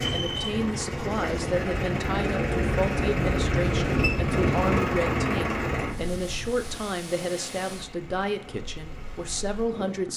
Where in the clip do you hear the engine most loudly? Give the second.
5 s.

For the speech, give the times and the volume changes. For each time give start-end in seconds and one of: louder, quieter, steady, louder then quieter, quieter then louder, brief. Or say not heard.
0.1-10.1 steady.